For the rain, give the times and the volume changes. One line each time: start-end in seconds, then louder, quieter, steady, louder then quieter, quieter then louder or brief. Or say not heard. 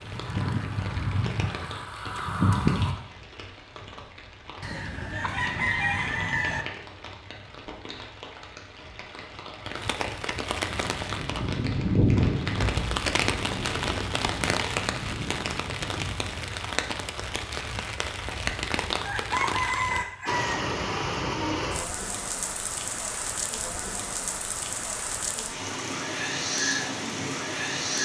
0.0-28.0 louder.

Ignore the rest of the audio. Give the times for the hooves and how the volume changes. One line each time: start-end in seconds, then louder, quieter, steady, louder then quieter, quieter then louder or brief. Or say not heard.
0.0-3.0 brief
10.7-16.4 quieter.